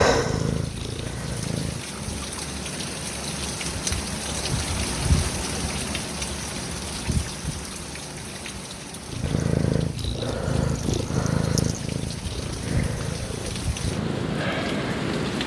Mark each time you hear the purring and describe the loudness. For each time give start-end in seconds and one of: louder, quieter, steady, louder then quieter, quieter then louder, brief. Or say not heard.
0.0-1.9 brief
9.1-15.4 quieter.